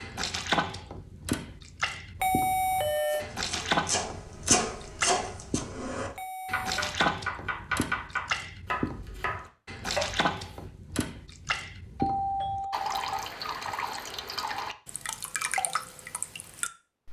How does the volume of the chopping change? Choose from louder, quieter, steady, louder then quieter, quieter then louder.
quieter.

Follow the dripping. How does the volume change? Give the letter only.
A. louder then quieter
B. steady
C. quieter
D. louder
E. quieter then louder
B.